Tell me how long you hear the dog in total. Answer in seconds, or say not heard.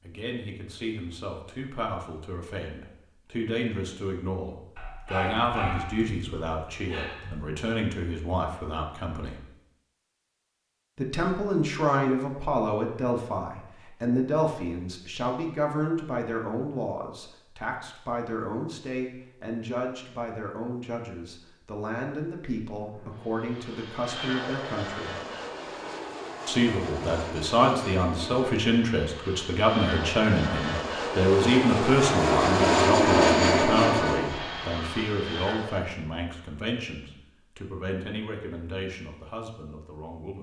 3 s.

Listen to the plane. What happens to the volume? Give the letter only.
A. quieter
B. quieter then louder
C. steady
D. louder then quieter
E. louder
E.